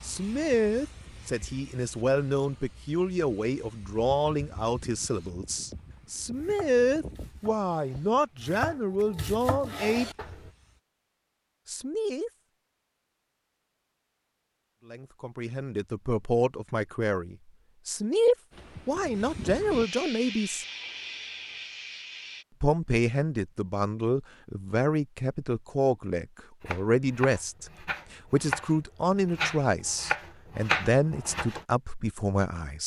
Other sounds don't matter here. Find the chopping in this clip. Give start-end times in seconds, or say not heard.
6.3-10.5, 26.6-31.6.